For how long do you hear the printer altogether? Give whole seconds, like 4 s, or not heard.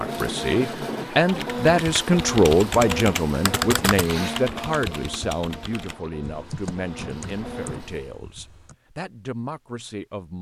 8 s.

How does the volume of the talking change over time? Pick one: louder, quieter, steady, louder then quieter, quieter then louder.
quieter.